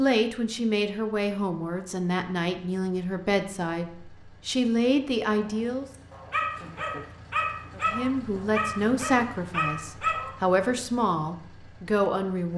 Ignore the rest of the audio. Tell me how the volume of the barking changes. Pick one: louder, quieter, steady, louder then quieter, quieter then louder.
steady.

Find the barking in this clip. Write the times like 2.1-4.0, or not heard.
5.9-10.3.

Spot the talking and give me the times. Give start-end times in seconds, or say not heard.
0.0-5.8, 7.8-12.5.